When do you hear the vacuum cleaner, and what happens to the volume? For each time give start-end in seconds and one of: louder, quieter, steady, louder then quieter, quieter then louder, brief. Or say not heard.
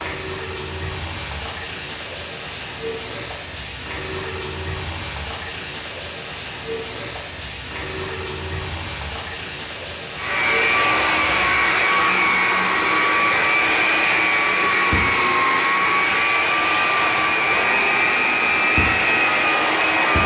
10.2-20.2 steady.